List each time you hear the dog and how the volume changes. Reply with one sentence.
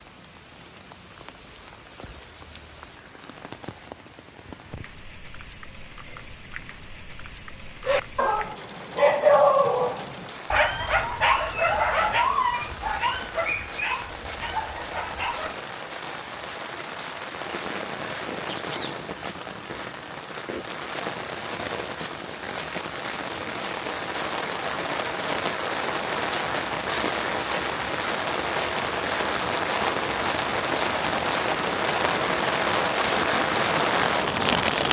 You can hear the dog from 7.8 to 15.6 s, getting quieter.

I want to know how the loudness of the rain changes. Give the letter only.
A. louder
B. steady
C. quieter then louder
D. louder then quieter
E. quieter
A.